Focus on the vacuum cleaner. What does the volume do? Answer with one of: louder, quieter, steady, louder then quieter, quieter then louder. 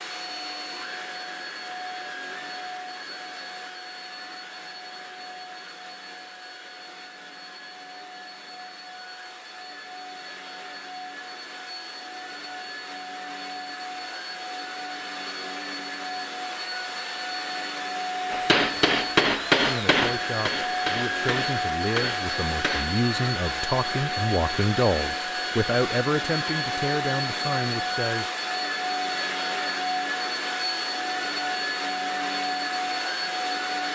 louder.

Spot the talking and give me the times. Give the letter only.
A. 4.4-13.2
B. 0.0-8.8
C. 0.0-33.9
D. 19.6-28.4
D.